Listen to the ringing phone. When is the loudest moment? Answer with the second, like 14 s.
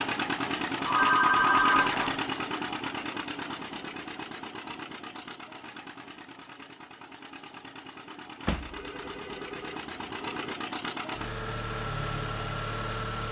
1 s.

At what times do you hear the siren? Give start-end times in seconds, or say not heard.
not heard.